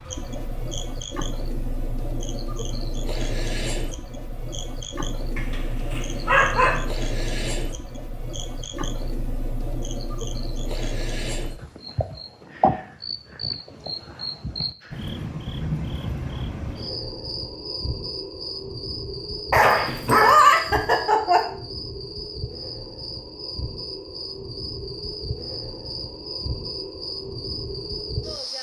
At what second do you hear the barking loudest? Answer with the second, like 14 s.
20 s.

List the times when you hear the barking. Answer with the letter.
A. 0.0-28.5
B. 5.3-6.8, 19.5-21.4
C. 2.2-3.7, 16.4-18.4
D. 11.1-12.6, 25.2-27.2
B.